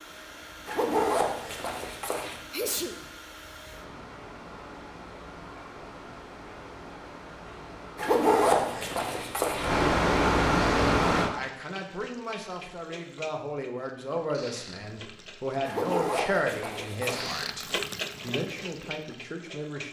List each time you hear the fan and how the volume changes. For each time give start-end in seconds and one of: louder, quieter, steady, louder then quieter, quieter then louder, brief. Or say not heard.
0.0-11.3 louder.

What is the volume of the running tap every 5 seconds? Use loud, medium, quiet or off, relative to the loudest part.
off, off, medium, loud.